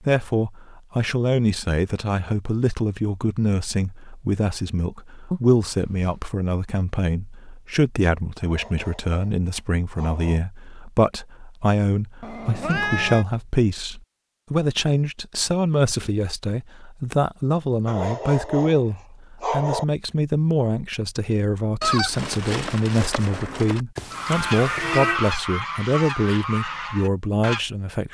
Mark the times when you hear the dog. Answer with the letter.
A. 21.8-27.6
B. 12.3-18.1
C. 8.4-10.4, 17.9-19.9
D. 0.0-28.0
C.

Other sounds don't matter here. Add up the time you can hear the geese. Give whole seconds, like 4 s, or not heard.
6 s.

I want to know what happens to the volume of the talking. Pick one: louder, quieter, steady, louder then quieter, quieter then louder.
steady.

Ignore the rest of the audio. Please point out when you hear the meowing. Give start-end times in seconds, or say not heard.
5.3-6.2, 12.2-13.2, 23.9-25.2.